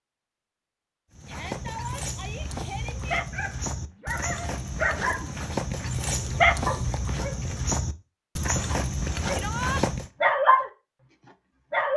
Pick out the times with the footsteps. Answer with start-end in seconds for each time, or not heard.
1.1-10.1.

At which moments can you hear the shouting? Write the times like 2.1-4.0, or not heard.
1.2-3.2, 9.3-9.8.